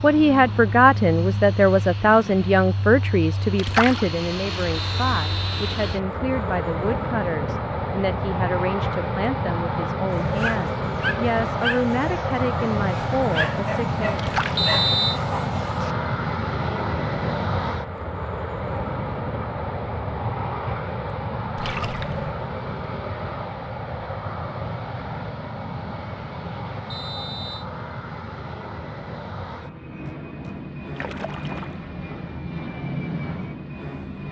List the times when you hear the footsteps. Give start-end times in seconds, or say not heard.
not heard.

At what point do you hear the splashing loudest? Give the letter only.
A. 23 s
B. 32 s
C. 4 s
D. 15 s
C.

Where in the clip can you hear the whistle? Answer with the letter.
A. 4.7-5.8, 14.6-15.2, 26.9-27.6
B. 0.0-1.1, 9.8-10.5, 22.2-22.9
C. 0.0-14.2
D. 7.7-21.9
A.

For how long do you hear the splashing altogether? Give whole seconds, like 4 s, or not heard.
3 s.